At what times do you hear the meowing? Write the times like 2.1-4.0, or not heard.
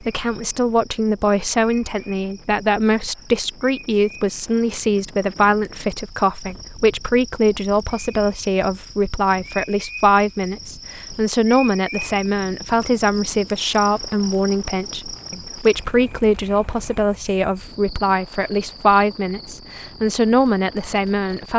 not heard.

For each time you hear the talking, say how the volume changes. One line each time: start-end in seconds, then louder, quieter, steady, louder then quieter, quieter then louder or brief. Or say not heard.
0.0-21.5 steady.